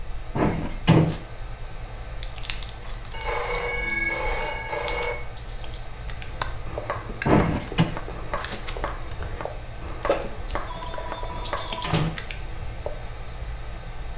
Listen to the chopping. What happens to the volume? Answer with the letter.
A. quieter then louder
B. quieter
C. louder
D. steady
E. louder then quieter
D.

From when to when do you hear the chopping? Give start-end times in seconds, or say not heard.
6.2-11.8.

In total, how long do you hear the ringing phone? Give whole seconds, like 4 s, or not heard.
3 s.